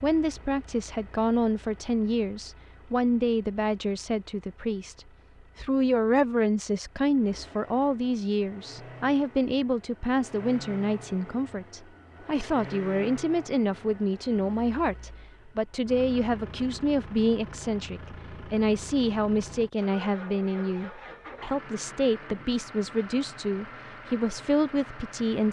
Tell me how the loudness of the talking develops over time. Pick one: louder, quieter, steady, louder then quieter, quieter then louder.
steady.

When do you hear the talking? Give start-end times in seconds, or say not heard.
0.0-25.4.